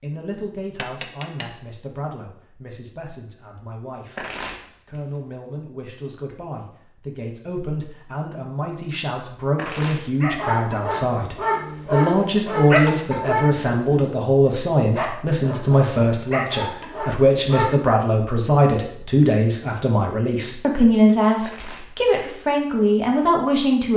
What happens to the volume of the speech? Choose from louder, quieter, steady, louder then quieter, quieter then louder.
louder.